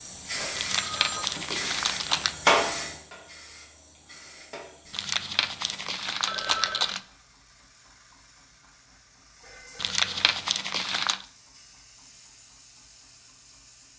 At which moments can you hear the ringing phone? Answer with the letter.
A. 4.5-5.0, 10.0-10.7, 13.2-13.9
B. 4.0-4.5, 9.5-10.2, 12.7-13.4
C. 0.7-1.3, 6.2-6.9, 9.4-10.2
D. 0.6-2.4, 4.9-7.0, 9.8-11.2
C.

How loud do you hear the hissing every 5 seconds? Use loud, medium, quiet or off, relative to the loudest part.
loud, quiet, quiet.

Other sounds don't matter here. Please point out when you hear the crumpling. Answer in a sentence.
The crumpling can be heard from 0.6 to 2.4 s, from 4.9 to 7.0 s and from 9.8 to 11.2 s.